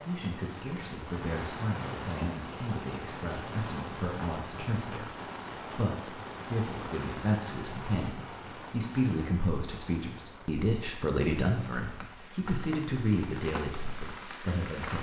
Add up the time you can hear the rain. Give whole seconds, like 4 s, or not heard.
15 s.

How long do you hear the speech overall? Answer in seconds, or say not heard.
15 s.